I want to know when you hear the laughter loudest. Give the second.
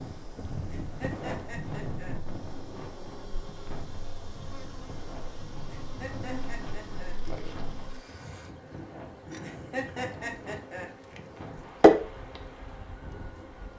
10 s.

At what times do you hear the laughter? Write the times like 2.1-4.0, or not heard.
0.7-2.1, 5.7-7.2, 9.4-10.9.